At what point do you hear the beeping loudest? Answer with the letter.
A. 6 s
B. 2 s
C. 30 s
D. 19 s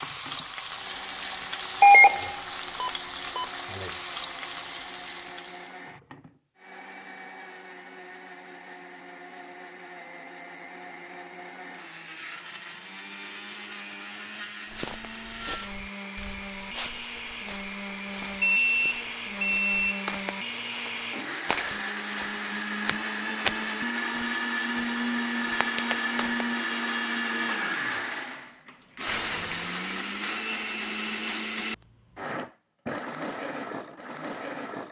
B.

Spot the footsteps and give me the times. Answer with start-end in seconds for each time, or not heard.
14.7-26.4.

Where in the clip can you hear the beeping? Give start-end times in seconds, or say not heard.
1.8-3.5, 18.4-20.1, 29.1-29.7.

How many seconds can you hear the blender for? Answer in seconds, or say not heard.
35 s.